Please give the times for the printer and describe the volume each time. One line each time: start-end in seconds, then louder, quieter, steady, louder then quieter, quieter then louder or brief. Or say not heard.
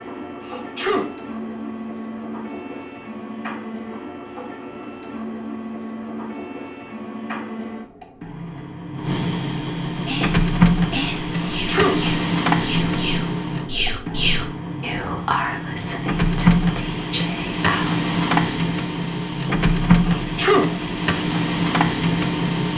0.0-22.7 louder.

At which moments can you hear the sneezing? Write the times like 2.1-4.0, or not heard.
0.4-1.1, 11.5-12.1, 20.1-20.8.